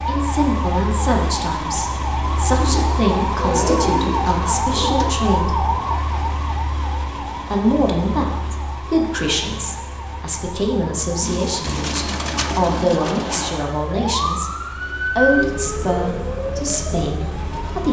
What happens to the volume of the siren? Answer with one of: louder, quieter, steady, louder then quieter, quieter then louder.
quieter then louder.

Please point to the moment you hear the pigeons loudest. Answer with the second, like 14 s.
4 s.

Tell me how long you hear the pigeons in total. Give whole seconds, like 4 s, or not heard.
5 s.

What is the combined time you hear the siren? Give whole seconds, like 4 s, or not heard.
18 s.